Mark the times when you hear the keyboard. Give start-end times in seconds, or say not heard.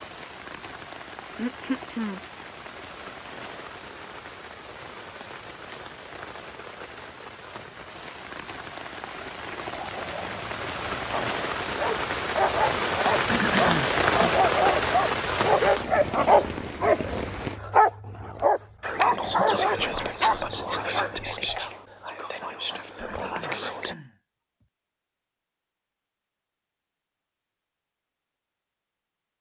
not heard.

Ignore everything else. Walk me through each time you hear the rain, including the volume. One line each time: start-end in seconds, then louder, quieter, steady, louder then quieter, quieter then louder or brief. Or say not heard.
0.0-17.6 louder.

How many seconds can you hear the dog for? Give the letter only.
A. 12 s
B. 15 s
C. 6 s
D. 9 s
A.